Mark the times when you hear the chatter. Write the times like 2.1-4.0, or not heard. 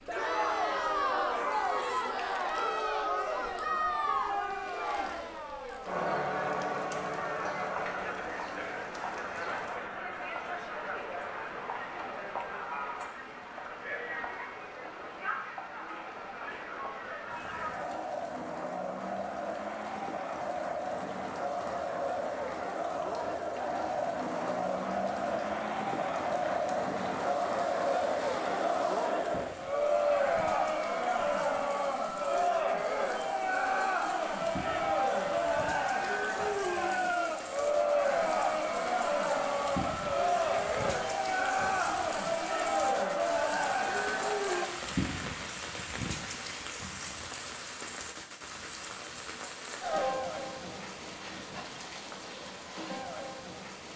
0.1-44.7.